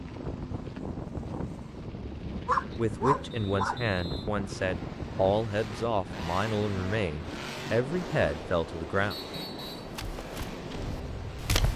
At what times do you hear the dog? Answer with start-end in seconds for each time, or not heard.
2.2-3.9.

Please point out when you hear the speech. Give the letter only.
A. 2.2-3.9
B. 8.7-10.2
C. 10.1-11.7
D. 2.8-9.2
D.